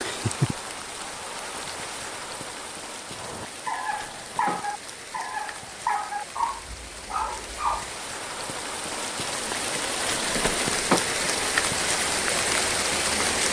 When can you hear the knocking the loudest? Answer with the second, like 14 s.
11 s.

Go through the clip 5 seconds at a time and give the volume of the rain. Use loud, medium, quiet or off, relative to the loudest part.
medium, medium, loud.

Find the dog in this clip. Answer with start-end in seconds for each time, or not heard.
3.1-7.9.